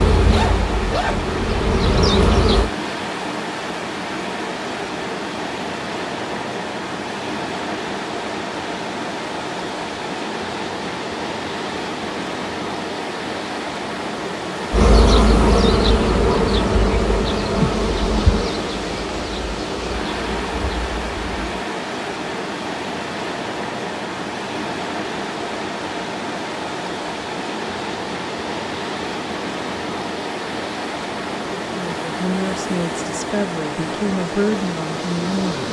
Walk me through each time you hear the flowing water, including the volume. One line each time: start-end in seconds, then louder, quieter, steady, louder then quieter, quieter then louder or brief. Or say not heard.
0.0-35.6 steady.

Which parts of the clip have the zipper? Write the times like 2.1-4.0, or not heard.
0.3-1.2.